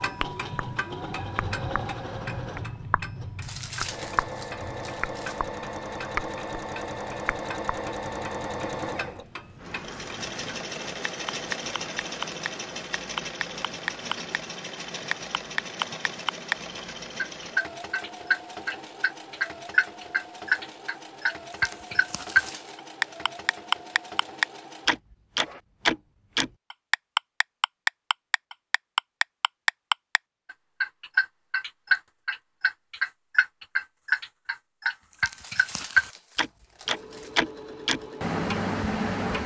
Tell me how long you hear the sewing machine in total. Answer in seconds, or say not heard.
28 s.